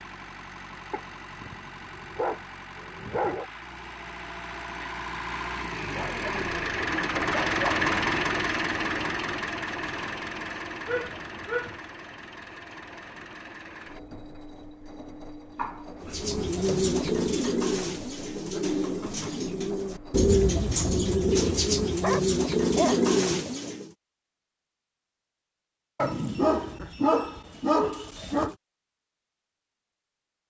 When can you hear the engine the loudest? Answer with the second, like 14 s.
8 s.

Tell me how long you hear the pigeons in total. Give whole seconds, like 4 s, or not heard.
8 s.